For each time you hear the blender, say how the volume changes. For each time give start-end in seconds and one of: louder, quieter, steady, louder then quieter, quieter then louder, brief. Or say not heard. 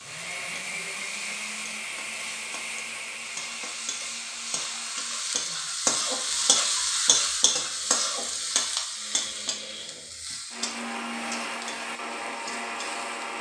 0.0-13.3 quieter then louder.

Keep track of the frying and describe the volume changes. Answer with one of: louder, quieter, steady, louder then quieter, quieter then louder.
louder then quieter.